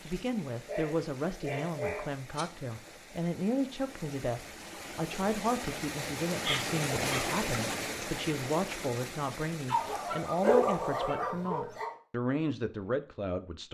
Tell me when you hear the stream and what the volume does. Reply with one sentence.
You can hear the stream from 0.0 to 11.1 s, getting louder then quieter.